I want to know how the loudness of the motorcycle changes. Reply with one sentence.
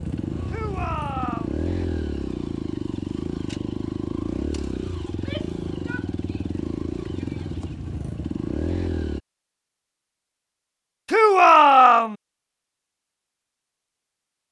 The loudness of the motorcycle stays about the same.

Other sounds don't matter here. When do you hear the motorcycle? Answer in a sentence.
The motorcycle can be heard from 0.0 to 9.2 s.